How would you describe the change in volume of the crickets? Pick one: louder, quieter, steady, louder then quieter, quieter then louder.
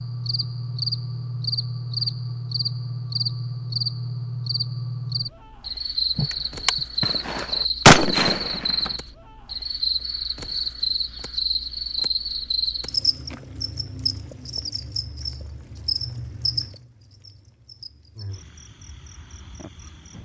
quieter.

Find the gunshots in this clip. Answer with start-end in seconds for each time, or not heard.
6.2-8.9.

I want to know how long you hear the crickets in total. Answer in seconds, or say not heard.
20 s.